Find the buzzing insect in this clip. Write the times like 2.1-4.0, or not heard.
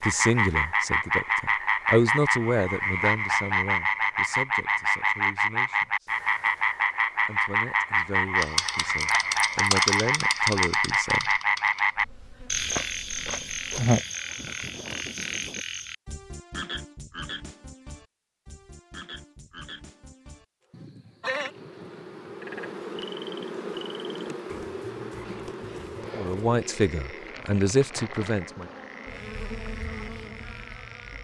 8.3-15.7, 20.8-31.1.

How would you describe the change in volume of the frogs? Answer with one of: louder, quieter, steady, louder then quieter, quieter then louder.
quieter.